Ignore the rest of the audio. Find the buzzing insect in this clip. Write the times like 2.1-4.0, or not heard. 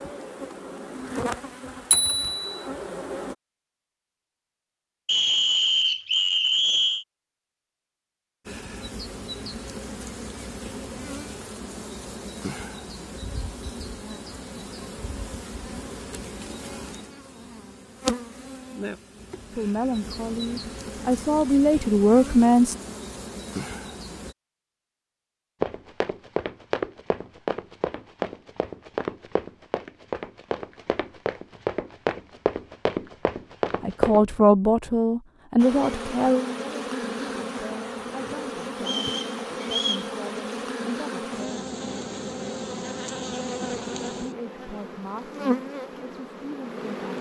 0.0-3.4, 8.4-24.4, 35.5-47.1.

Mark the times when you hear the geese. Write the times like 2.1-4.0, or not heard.
not heard.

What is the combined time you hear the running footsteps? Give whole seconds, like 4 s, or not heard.
9 s.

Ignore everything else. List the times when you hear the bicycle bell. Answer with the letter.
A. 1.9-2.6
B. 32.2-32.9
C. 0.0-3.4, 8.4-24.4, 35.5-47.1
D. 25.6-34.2
A.